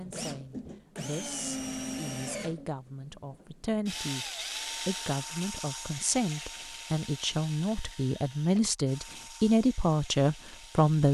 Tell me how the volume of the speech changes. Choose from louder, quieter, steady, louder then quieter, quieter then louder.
louder.